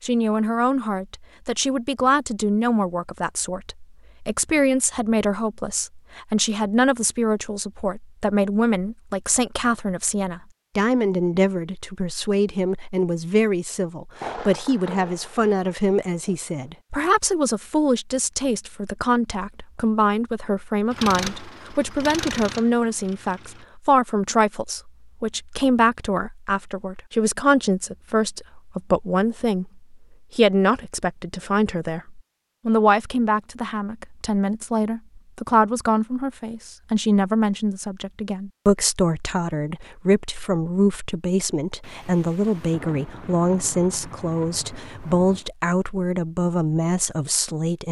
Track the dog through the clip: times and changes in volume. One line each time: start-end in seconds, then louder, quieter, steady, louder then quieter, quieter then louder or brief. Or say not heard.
not heard.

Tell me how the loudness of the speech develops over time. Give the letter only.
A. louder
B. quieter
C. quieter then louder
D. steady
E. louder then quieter
D.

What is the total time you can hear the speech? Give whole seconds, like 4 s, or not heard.
48 s.